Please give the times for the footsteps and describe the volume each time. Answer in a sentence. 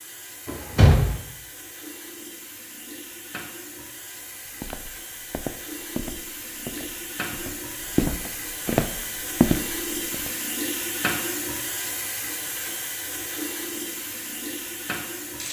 You can hear the footsteps from 4.5 to 10.3 s, getting quieter then louder.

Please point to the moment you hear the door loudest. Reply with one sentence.
The loudest moment of the door is at 1 second.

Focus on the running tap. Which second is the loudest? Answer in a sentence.
The loudest moment of the running tap is at 11 seconds.